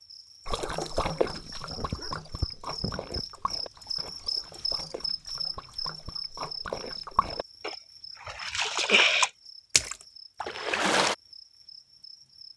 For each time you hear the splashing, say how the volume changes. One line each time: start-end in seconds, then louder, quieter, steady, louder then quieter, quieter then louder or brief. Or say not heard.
0.5-11.2 quieter then louder.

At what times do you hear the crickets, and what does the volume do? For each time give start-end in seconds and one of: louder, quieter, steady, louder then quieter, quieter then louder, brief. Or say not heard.
0.0-12.5 louder then quieter.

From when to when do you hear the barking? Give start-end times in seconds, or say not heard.
1.1-3.2.